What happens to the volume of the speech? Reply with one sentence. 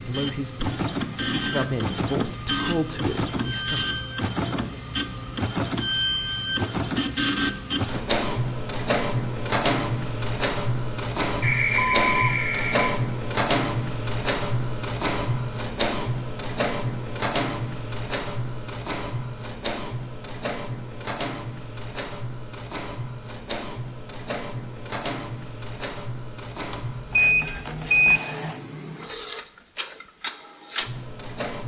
The loudness of the speech goes up, then down.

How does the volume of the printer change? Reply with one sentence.
The volume of the printer goes down.